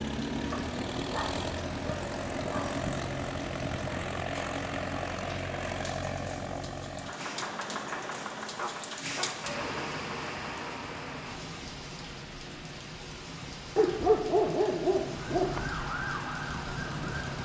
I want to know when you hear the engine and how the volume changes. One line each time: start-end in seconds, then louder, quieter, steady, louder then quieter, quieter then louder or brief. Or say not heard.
0.0-17.4 quieter then louder.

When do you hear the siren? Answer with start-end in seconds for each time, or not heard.
15.2-17.4.